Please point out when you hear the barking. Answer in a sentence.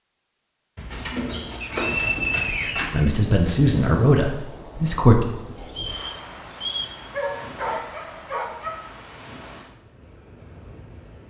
You can hear the barking from 0.8 to 3.0 s and from 7.1 to 8.8 s.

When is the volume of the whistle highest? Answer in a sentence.
The loudest moment of the whistle is at 2 seconds.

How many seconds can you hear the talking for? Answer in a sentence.
The talking can be heard for 2 seconds in total.